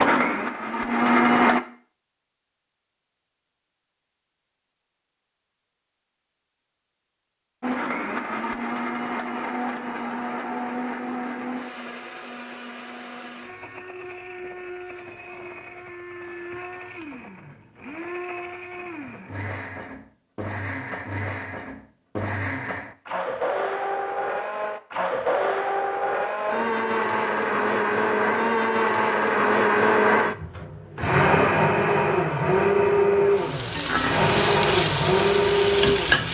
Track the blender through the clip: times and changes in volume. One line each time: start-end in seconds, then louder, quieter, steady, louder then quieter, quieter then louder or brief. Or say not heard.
0.0-1.6 brief
7.6-36.2 quieter then louder.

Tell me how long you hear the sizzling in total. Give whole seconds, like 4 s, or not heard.
3 s.